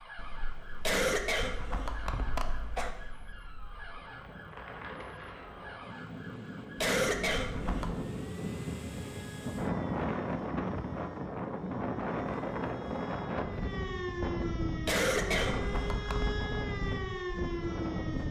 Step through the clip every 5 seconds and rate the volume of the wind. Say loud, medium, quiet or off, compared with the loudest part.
quiet, loud, loud, loud.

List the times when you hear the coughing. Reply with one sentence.
You can hear the coughing from 0.8 to 2.9 s, from 6.8 to 8.0 s and from 14.8 to 16.4 s.